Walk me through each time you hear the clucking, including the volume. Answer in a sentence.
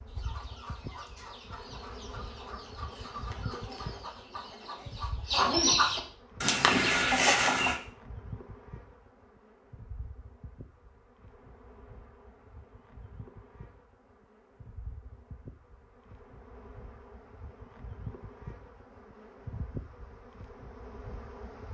The clucking can be heard from 0.1 to 7.8 s, getting louder.